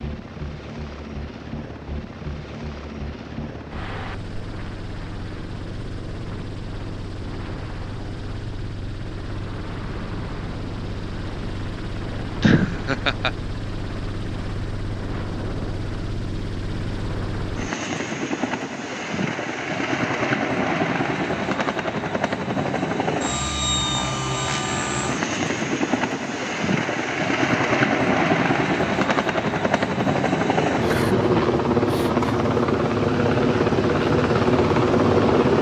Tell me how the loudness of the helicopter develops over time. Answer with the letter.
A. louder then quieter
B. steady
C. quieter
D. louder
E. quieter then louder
D.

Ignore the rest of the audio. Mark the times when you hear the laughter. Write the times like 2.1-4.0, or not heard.
12.4-13.3, 30.8-32.5.